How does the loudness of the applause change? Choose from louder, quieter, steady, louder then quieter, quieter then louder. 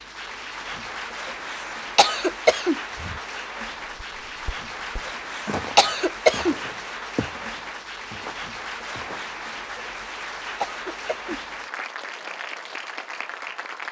steady.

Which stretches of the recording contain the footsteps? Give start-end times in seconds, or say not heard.
2.9-9.3.